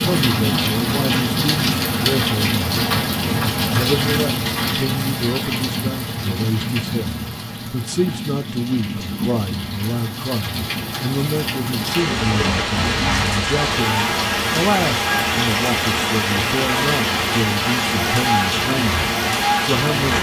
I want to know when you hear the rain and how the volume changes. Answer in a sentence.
You can hear the rain from 0.0 to 20.1 s, getting quieter then louder.